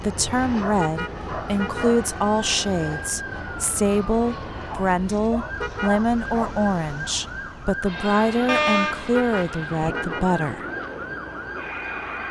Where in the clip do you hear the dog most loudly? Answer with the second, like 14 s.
9 s.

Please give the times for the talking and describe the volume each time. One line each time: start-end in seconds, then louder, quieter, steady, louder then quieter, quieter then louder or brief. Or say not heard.
0.0-10.7 steady.